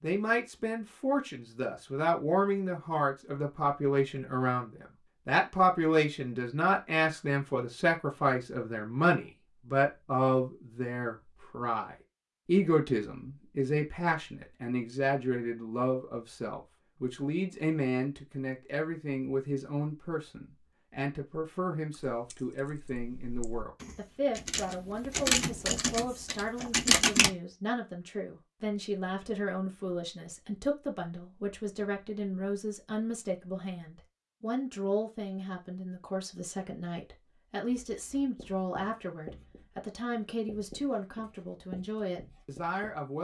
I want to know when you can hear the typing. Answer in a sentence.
You can hear the typing from 21.9 to 27.3 s.